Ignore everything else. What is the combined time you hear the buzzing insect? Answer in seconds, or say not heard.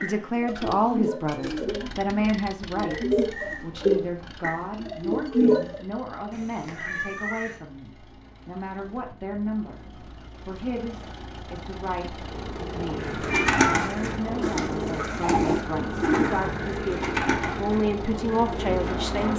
7 s.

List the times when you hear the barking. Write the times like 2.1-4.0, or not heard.
not heard.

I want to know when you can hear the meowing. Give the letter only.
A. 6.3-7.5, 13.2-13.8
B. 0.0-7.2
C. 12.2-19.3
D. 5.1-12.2
A.